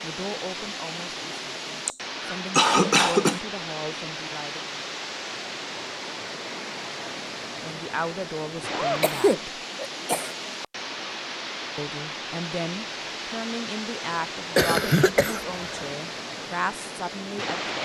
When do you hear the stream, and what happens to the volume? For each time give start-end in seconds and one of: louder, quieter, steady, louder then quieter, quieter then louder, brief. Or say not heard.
0.0-17.8 steady.